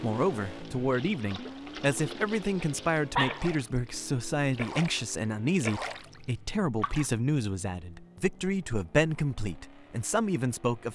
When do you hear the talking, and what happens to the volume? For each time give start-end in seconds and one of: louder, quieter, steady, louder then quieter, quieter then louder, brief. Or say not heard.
0.0-10.9 steady.